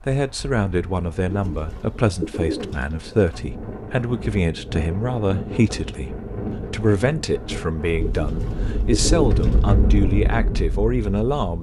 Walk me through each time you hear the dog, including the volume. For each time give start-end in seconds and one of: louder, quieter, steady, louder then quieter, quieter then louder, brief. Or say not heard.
not heard.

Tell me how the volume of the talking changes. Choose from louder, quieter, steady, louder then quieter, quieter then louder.
steady.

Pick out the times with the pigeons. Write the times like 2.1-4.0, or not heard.
1.3-3.5, 8.0-9.7.